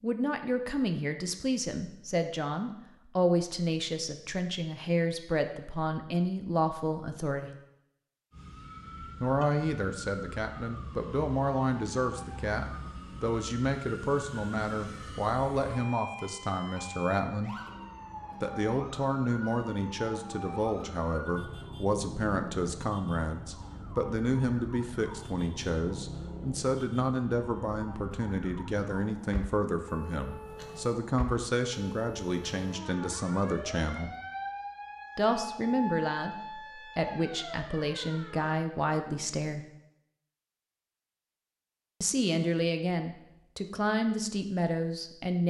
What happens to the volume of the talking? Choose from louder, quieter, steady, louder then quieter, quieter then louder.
steady.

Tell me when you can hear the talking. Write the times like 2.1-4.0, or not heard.
0.0-7.5, 9.2-17.6, 18.4-34.1, 35.1-39.6, 42.0-45.4.